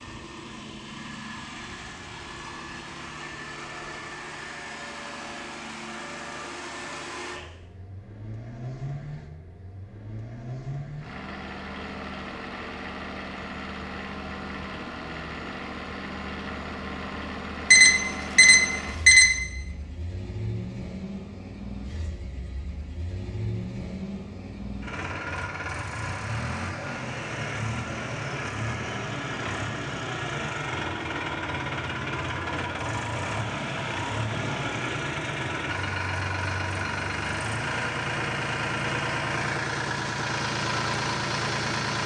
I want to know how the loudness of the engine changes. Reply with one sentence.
The loudness of the engine goes up.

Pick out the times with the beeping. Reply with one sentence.
You can hear the beeping from 17.7 to 19.4 s.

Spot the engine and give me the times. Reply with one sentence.
You can hear the engine from 0.0 to 42.0 s.